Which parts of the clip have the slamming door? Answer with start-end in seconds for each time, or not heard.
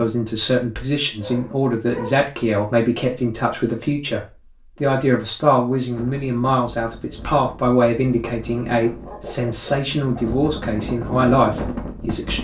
not heard.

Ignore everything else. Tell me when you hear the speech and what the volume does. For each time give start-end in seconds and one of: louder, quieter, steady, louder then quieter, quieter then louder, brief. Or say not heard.
0.0-12.3 steady.